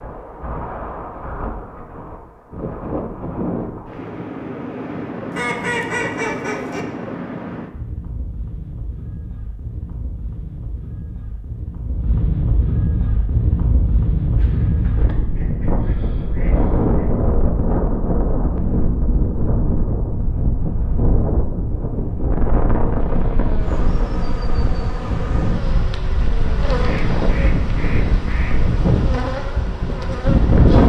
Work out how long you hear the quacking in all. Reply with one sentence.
You can hear the quacking for 6 seconds altogether.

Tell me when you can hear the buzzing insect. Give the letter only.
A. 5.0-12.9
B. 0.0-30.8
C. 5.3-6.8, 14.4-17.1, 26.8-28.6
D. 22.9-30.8
D.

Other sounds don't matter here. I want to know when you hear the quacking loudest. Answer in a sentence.
The volume of the quacking peaks at 6 seconds.